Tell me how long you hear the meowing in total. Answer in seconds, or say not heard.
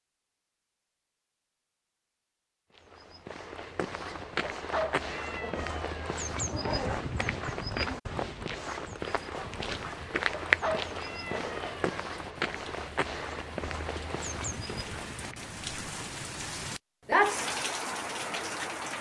4 s.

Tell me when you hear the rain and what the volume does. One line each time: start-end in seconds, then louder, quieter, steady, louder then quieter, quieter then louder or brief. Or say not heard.
9.0-18.9 louder.